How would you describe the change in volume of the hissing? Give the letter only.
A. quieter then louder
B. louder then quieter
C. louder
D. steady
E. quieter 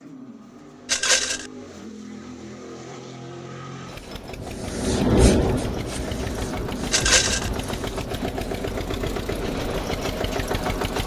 B.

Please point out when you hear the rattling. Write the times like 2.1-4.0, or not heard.
0.8-1.5, 6.9-7.5.